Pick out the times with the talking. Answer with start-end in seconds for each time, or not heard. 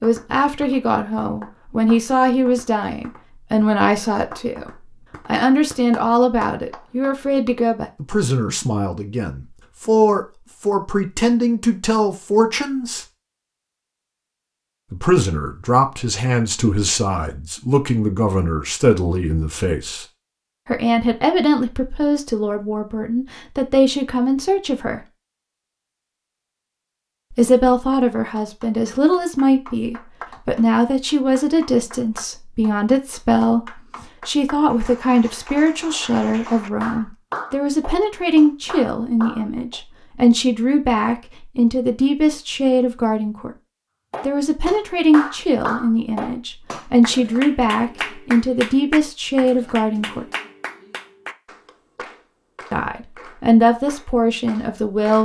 0.0-13.1, 14.9-20.1, 20.6-25.0, 27.3-43.5, 44.2-50.2, 52.7-55.2.